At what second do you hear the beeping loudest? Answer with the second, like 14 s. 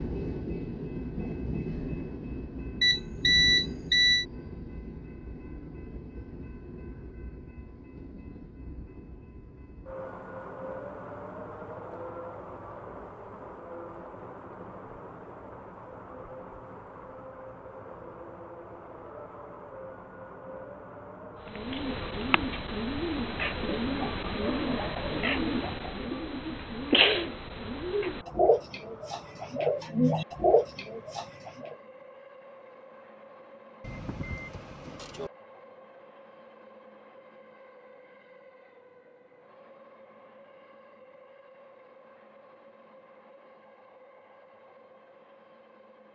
3 s.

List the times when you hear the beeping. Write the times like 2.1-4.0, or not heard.
2.8-4.2, 33.8-35.3.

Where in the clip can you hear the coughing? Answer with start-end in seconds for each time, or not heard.
not heard.